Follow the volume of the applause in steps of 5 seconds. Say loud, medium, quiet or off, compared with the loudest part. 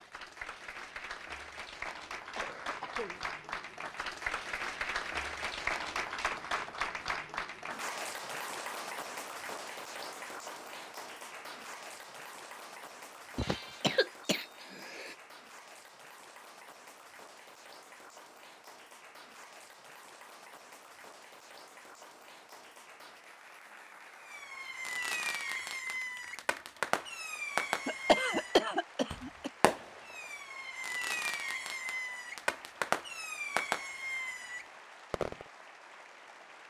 loud, loud, medium, quiet, quiet, quiet, quiet, quiet.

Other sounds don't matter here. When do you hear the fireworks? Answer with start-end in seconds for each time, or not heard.
24.2-35.5.